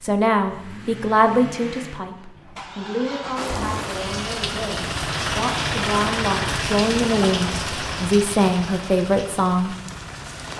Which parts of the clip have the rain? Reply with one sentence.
The rain can be heard from 3.4 to 10.5 s.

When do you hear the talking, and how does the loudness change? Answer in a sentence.
The talking can be heard from 0.0 to 9.8 s, getting quieter then louder.